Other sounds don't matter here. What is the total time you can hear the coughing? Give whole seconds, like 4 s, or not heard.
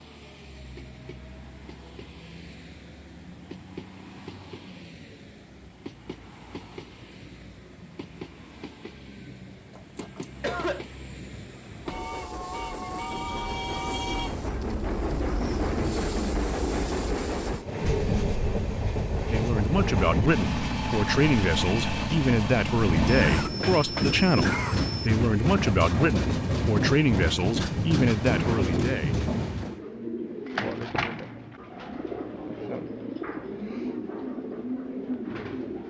3 s.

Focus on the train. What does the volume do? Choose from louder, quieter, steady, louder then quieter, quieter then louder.
louder.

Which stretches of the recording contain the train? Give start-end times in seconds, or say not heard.
0.0-29.8.